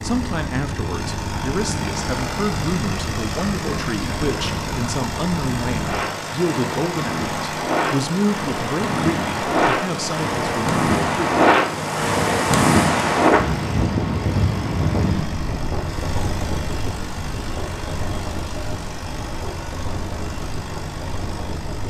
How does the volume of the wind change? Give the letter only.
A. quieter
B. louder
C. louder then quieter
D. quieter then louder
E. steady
C.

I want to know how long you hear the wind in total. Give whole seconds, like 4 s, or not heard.
22 s.